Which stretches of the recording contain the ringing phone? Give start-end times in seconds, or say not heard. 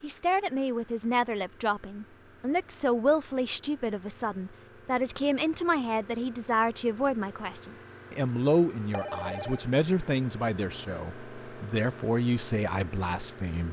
8.9-9.7.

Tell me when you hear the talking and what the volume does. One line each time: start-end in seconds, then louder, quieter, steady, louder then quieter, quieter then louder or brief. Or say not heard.
0.0-13.6 steady.